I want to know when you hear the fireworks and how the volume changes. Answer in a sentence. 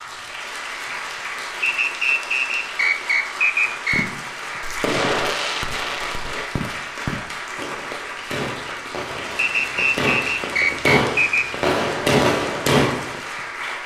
The fireworks can be heard from 3.9 to 13.2 s, getting quieter then louder.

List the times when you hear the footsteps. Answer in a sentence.
You can't hear the footsteps here.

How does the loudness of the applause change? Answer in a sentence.
The loudness of the applause stays about the same.